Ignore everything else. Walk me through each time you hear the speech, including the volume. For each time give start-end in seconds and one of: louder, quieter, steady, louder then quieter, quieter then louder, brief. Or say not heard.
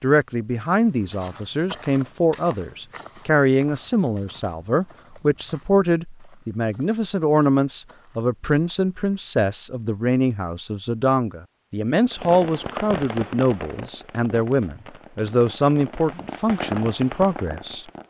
0.0-17.9 steady.